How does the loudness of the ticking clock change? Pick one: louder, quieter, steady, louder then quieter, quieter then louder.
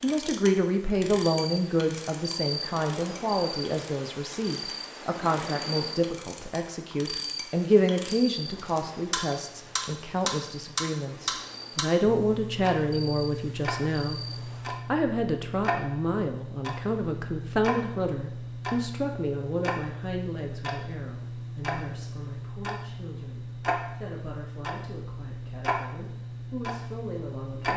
louder.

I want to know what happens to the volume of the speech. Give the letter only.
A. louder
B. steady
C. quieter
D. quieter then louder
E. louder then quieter
C.